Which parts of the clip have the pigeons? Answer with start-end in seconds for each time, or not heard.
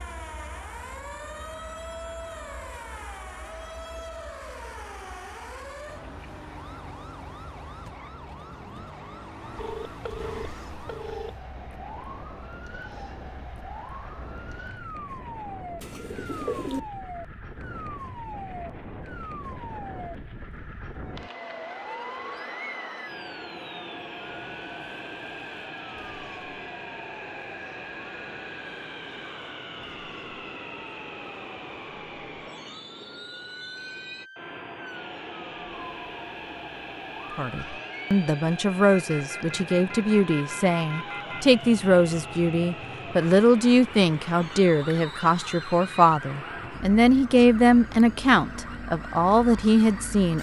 15.8-16.8.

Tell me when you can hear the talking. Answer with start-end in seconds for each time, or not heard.
37.4-50.3.